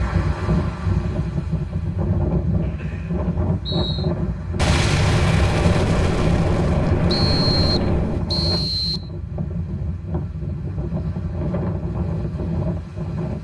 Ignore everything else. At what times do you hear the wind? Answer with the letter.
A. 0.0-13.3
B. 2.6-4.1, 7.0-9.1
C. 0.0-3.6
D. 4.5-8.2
A.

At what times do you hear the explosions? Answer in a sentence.
The explosions can be heard from 4.5 to 8.2 s.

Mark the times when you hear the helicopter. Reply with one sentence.
The helicopter can't be heard in this clip.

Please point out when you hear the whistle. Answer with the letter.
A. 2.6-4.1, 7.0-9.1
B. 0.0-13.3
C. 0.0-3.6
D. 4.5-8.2
A.